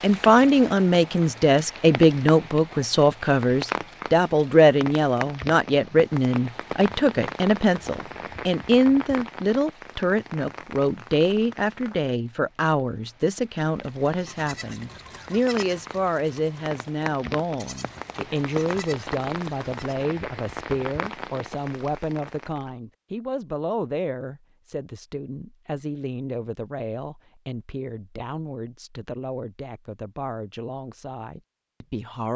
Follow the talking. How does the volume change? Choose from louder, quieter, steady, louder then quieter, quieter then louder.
quieter.